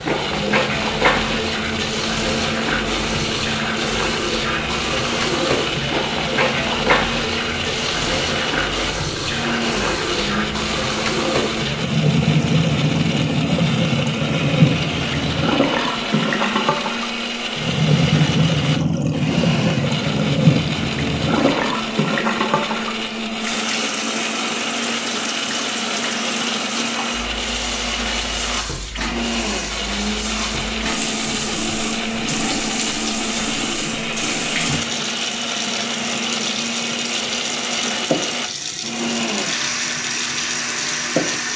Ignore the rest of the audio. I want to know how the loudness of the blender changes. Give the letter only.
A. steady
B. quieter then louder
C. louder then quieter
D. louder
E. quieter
A.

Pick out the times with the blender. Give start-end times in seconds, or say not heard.
0.0-41.5.